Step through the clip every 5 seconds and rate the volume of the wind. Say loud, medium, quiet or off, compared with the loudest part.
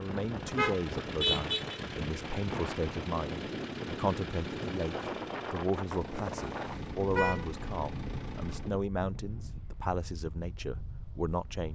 loud, loud, medium.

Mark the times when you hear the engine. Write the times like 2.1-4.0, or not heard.
0.0-8.8.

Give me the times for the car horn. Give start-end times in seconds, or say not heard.
0.5-1.8, 6.5-7.5.